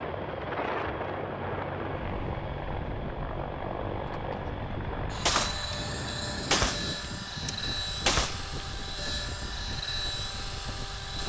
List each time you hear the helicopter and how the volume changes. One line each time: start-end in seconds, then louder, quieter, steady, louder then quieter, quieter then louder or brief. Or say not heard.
0.0-11.2 steady.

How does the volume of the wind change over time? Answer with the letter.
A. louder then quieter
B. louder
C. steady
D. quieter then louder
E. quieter
E.